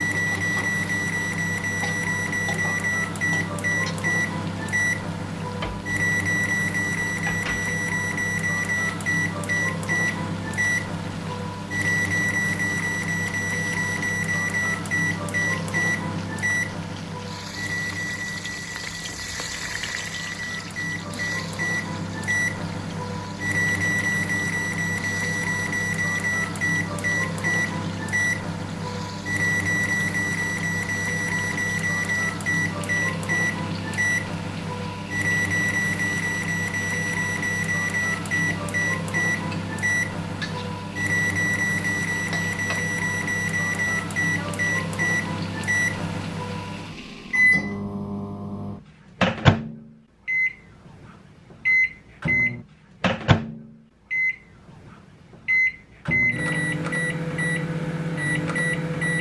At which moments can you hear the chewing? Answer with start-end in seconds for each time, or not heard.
not heard.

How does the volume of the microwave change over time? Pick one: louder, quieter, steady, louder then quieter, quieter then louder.
steady.